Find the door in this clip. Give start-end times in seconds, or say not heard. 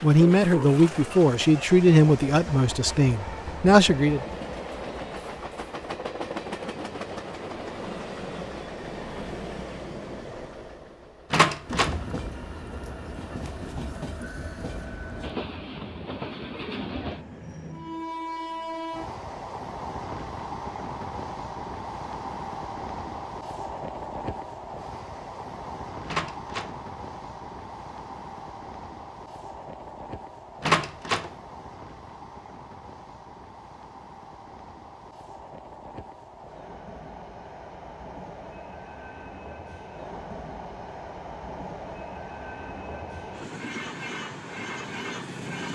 11.3-11.9, 26.1-26.8, 30.6-31.3.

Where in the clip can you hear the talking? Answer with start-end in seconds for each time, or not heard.
0.0-4.2.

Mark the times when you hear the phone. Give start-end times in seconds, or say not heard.
not heard.